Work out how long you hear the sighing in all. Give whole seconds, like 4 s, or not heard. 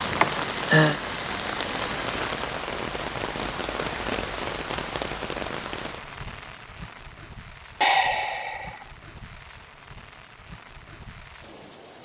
2 s.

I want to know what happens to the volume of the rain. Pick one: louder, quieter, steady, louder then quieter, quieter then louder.
quieter.